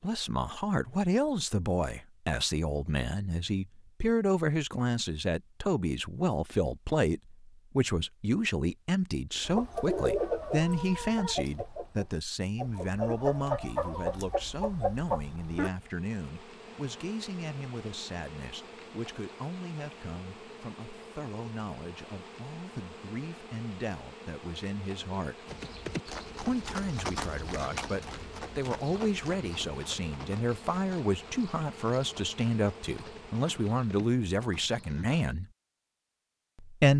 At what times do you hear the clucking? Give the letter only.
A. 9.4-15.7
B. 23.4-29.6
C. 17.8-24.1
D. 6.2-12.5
A.